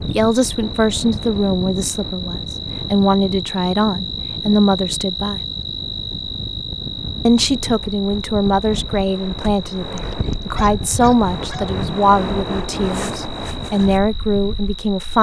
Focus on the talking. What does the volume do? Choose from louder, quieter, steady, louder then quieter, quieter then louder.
steady.